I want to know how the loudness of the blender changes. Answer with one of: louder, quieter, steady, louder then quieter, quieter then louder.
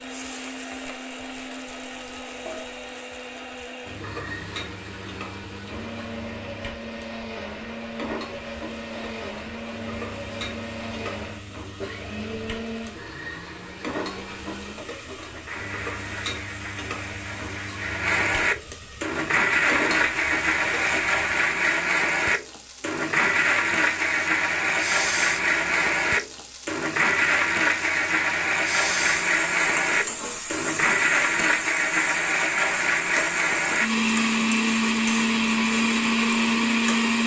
louder.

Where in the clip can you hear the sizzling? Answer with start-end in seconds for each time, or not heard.
0.0-37.2.